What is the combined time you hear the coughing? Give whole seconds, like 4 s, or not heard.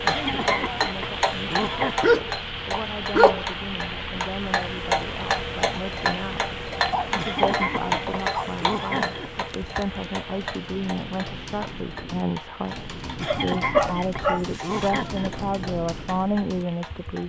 6 s.